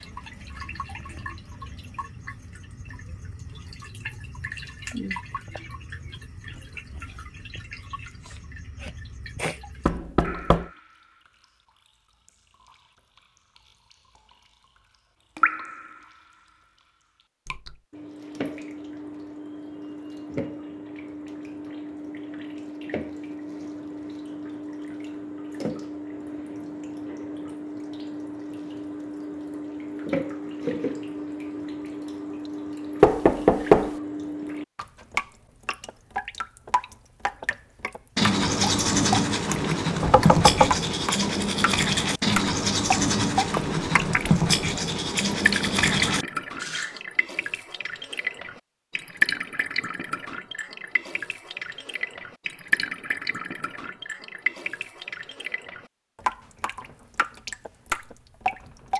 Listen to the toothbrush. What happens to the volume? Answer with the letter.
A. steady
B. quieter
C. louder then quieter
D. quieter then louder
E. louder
A.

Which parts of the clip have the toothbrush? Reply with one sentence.
The toothbrush can be heard from 38.1 to 47.0 s.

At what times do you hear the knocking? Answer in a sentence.
The knocking can be heard from 9.8 to 10.7 s, from 33.0 to 33.9 s and from 40.0 to 40.8 s.